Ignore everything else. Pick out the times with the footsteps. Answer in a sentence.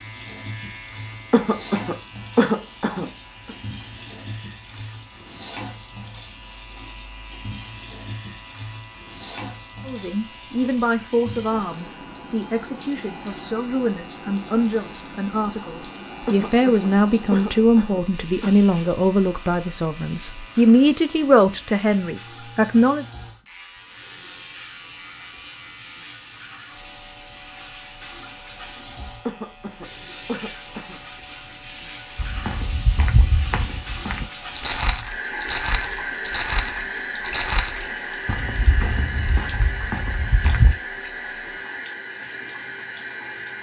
The footsteps can be heard from 32.1 to 40.8 s.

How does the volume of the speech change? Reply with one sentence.
The loudness of the speech goes up.